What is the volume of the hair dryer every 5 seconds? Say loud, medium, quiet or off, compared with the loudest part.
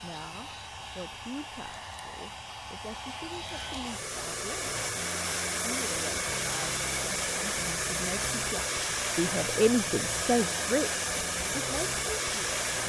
medium, loud, loud.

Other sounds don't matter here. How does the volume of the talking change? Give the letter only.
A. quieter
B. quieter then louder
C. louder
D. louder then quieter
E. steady
C.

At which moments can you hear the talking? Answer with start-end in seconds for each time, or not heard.
0.0-4.7, 5.6-12.7.